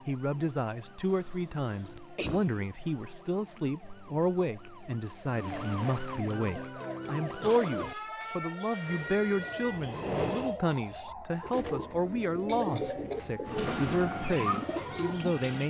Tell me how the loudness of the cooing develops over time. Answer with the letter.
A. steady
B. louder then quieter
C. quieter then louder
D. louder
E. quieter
D.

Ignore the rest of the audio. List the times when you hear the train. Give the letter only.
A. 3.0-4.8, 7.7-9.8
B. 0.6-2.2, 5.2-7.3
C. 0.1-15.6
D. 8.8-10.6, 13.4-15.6
D.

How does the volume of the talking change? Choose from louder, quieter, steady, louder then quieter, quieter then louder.
steady.